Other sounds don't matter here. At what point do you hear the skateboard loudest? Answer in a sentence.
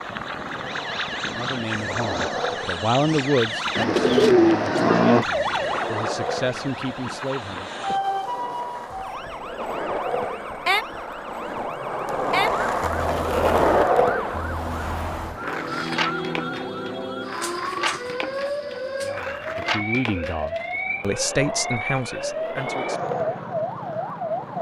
The loudest moment of the skateboard is at 14 seconds.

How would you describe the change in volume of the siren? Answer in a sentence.
The volume of the siren stays about the same.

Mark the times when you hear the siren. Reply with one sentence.
You can hear the siren from 0.0 to 24.5 s.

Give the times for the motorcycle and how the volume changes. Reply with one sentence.
The motorcycle can't be heard in this clip.